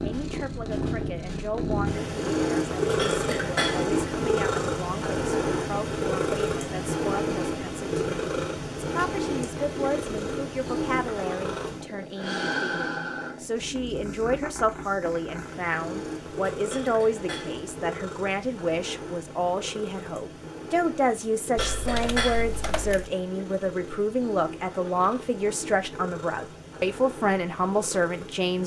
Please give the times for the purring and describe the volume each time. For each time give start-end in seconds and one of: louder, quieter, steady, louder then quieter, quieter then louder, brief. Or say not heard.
0.0-28.6 quieter.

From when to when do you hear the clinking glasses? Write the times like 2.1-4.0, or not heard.
3.0-3.9, 16.7-17.6, 21.6-22.4.